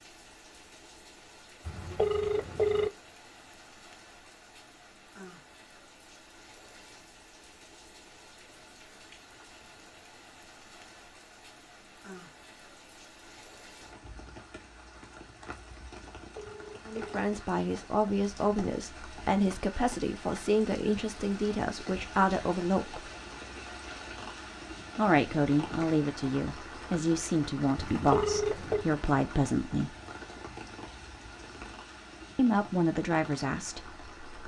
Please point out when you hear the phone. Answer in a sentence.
The phone can be heard from 1.6 to 2.9 s, from 16.1 to 17.2 s and from 27.8 to 28.9 s.